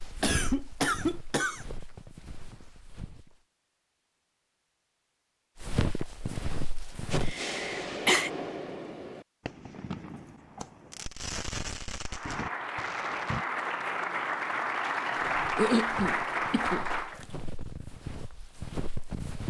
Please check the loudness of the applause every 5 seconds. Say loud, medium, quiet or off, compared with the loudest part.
off, off, loud, loud.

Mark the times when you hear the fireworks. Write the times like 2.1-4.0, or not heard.
7.1-13.4.